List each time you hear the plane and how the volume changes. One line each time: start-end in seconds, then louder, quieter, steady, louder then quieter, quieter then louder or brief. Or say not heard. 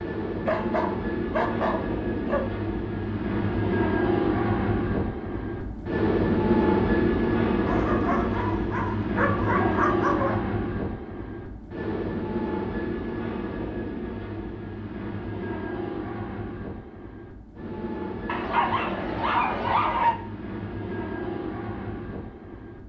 0.0-22.8 quieter.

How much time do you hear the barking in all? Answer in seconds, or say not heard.
7 s.